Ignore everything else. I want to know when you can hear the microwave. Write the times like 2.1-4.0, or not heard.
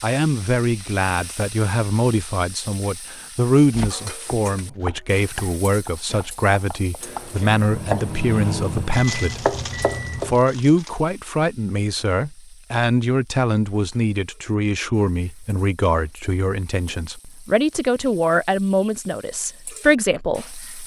7.0-10.3.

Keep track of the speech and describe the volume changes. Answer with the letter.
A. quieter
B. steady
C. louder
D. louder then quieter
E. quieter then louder
B.